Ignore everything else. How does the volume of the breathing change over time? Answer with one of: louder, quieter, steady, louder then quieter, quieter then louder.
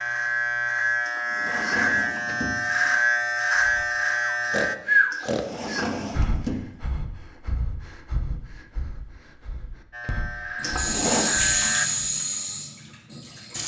quieter.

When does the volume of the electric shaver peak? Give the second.
3 s.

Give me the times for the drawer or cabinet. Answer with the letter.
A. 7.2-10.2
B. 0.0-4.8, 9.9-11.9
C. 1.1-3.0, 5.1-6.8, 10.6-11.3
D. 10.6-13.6
C.